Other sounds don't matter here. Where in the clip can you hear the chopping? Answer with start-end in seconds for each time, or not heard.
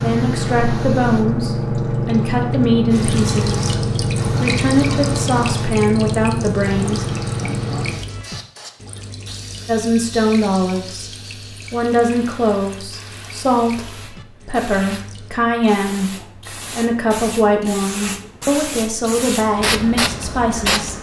not heard.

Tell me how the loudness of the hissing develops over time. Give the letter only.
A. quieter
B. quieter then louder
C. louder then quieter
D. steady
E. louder
B.